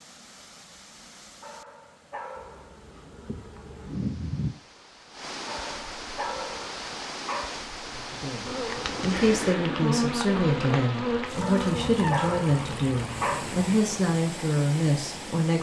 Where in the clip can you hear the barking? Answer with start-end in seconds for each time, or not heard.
1.4-2.8, 5.5-7.5, 11.4-13.4.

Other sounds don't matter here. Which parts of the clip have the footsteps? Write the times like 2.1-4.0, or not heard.
not heard.